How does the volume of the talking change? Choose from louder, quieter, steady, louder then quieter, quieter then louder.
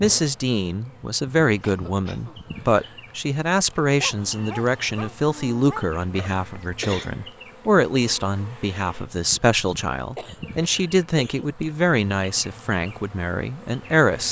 steady.